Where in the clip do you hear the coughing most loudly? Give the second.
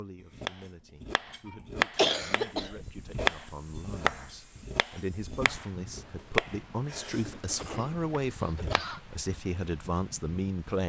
2 s.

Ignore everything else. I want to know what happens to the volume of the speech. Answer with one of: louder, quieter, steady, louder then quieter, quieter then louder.
louder.